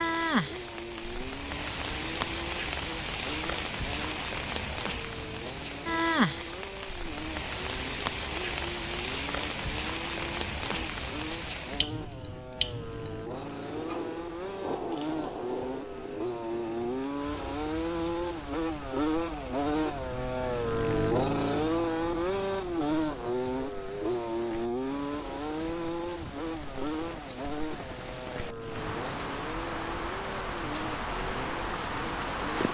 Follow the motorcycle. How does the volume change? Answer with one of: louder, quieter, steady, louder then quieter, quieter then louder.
louder then quieter.